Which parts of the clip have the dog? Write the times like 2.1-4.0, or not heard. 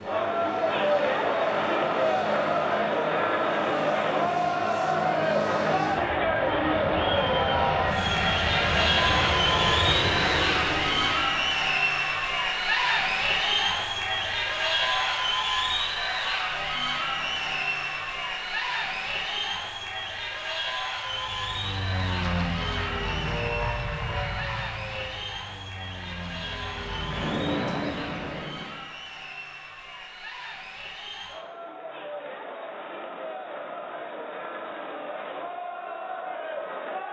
not heard.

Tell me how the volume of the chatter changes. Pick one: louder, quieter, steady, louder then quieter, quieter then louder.
quieter.